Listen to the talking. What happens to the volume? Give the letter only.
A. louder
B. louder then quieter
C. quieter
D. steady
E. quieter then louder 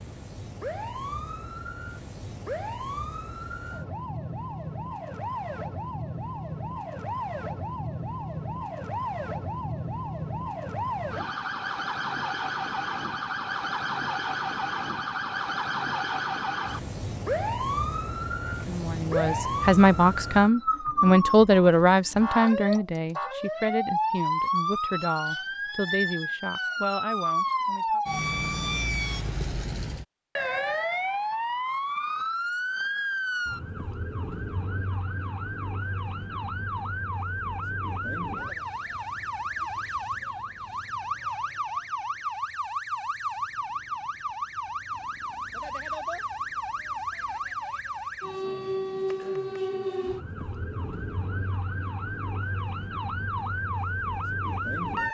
C.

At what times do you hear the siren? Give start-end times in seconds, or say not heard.
0.0-55.0.